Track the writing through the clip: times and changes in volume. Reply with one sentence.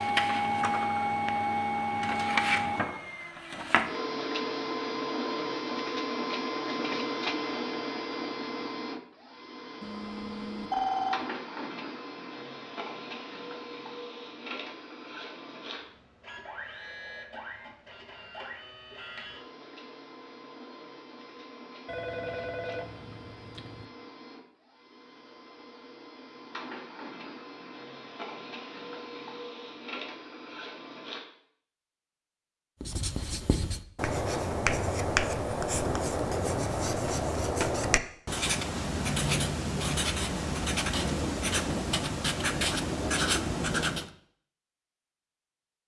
The writing can be heard from 32.8 to 44.1 s, at a steady volume.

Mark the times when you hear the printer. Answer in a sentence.
The printer can be heard from 0.0 to 31.2 s.